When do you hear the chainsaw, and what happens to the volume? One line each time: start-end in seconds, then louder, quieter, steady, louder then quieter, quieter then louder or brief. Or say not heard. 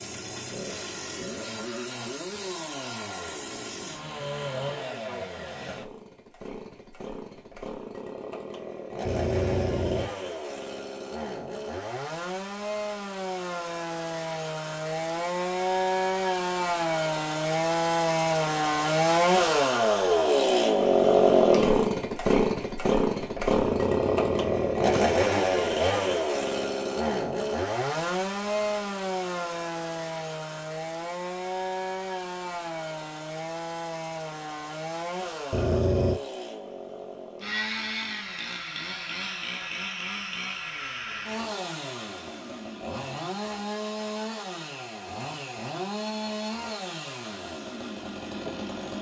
0.0-48.9 louder then quieter.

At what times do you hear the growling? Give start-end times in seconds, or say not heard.
9.1-10.2, 23.6-25.2, 35.5-36.2.